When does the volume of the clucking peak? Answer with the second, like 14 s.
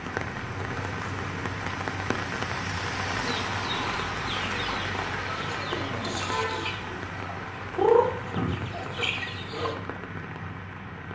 8 s.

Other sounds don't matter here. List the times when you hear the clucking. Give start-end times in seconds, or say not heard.
3.1-9.8.